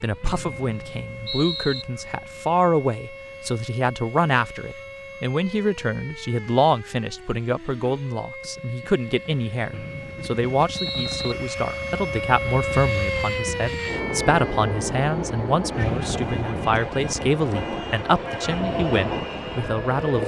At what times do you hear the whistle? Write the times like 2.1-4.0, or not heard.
0.2-1.9, 9.7-11.3, 15.8-16.6.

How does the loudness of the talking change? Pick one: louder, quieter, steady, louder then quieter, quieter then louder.
steady.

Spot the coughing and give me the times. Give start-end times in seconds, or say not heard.
not heard.